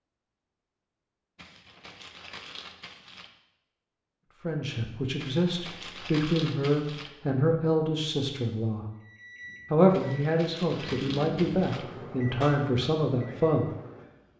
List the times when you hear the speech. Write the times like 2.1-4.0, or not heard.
4.4-8.8, 9.7-13.7.